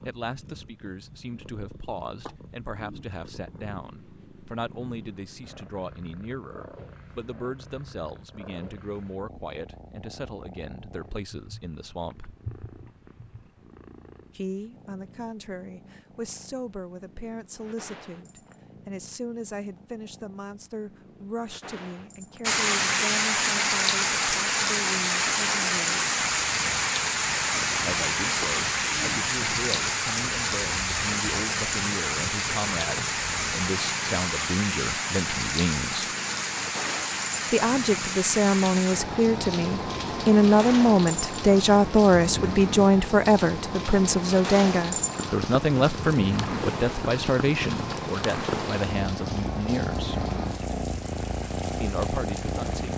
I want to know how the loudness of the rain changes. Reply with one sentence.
The loudness of the rain goes down.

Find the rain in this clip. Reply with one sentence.
You can hear the rain from 22.4 to 52.9 s.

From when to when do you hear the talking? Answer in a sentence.
You can hear the talking from 0.1 to 12.3 s, from 14.3 to 26.1 s, from 27.8 to 36.1 s, from 37.5 to 50.2 s and from 51.8 to 52.9 s.